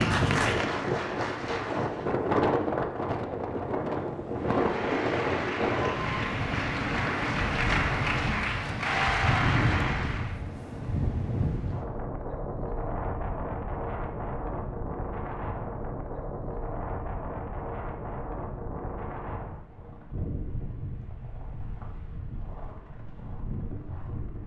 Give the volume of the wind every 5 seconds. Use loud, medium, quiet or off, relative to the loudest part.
loud, loud, medium, medium, quiet.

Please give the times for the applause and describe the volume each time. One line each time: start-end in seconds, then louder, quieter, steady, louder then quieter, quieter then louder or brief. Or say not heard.
0.0-2.1 brief
4.3-10.4 louder.